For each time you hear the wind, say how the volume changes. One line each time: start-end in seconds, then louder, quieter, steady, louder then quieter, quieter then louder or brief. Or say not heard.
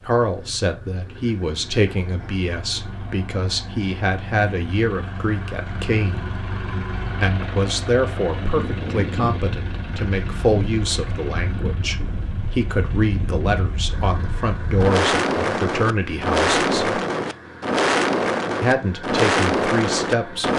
8.2-20.5 louder.